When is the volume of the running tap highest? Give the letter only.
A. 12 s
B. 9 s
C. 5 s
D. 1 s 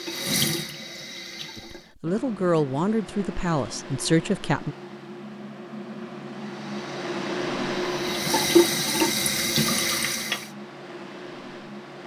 B.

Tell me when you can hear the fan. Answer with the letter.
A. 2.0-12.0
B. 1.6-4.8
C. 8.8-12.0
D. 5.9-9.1
A.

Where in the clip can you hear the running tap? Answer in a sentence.
The running tap can be heard from 0.0 to 1.9 s and from 6.5 to 10.5 s.